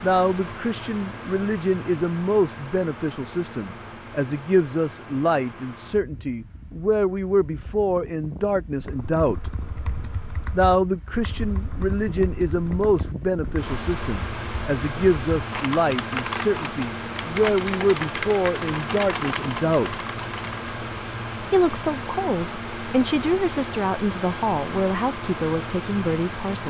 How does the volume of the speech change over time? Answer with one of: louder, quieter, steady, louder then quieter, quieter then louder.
steady.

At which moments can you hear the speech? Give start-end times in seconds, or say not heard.
0.0-9.4, 10.5-20.0, 21.5-26.6.